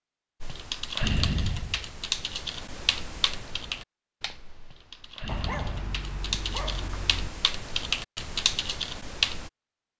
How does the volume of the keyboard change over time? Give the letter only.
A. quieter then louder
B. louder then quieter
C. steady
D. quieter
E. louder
A.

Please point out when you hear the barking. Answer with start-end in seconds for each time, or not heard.
5.2-7.3.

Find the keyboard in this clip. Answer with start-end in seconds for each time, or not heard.
0.4-9.5.